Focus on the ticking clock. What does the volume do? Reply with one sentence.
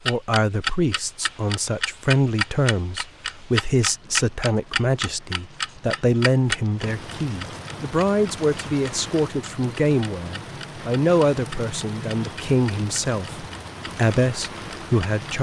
The volume of the ticking clock goes down.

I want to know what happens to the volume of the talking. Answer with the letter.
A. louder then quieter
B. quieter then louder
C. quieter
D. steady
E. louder
D.